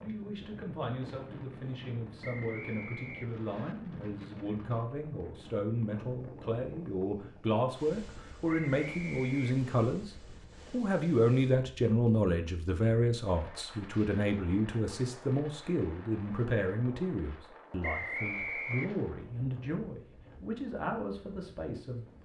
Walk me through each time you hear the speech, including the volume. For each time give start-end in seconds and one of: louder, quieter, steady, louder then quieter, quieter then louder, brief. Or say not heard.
0.0-22.2 louder then quieter.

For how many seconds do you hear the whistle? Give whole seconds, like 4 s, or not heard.
4 s.